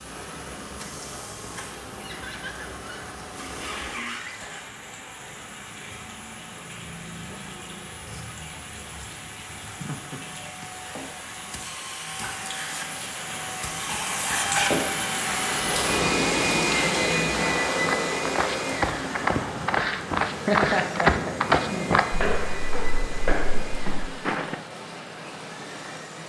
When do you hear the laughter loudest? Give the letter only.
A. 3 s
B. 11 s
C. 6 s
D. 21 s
D.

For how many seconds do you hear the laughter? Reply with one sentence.
You can hear the laughter for 3 seconds altogether.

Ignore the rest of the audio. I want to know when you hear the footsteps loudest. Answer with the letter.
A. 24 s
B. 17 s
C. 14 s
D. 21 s
D.